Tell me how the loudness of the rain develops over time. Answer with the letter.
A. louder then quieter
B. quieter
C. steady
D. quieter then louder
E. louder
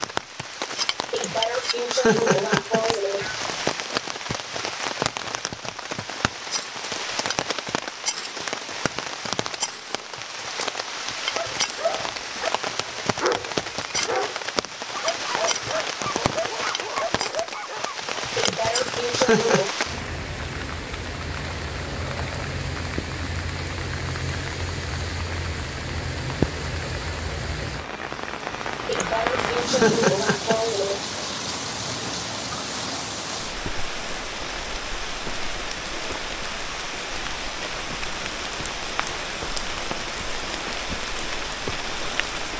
C.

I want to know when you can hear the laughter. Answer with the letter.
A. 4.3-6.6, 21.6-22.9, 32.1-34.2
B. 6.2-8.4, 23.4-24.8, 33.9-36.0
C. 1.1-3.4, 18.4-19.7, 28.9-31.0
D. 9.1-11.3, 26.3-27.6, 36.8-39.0
C.